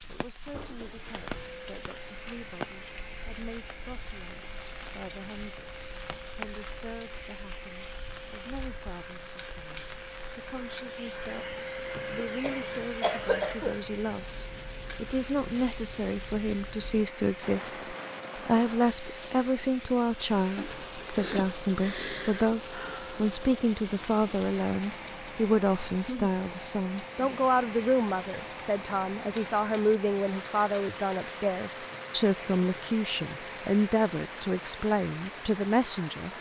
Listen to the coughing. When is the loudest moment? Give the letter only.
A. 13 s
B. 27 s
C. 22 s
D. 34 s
A.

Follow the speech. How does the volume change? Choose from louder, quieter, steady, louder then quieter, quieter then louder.
louder.